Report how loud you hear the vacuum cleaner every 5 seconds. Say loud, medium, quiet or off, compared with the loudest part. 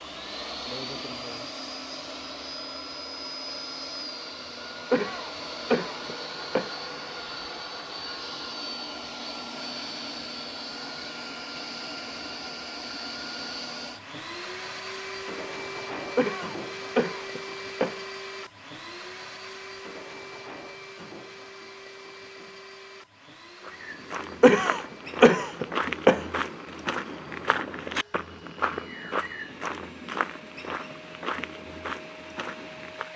loud, loud, loud, loud, medium, quiet, medium.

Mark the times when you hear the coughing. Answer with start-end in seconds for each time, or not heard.
4.9-6.8, 16.1-18.0, 24.4-26.2.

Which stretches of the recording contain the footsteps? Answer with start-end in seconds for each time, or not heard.
23.6-33.1.